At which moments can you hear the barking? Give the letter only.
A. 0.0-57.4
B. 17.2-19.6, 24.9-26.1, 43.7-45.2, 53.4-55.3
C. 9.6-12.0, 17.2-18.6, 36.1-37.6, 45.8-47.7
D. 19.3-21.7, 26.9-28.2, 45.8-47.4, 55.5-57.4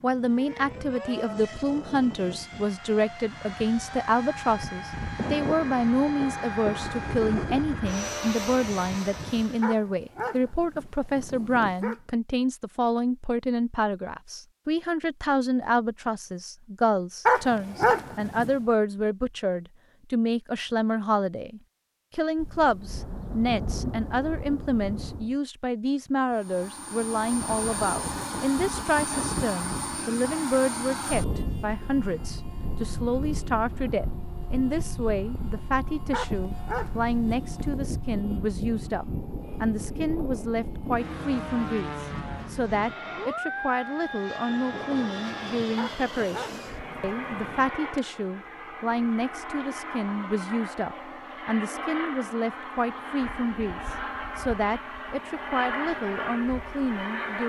C.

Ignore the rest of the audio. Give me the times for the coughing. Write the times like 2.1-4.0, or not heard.
not heard.